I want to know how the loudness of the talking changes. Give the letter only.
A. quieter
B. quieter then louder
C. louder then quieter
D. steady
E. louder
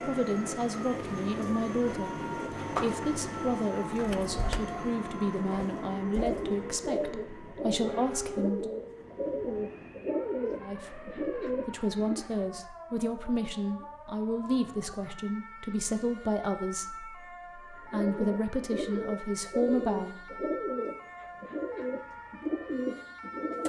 D.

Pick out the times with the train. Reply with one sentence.
You can hear the train from 0.0 to 12.4 s.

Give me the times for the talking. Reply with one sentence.
The talking can be heard from 0.0 to 8.7 s and from 10.6 to 20.4 s.